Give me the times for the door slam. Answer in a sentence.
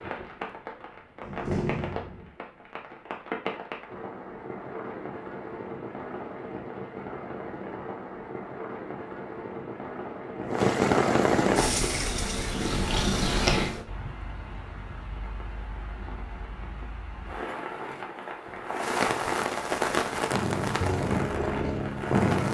You can hear the door slam from 1.2 to 2.3 s.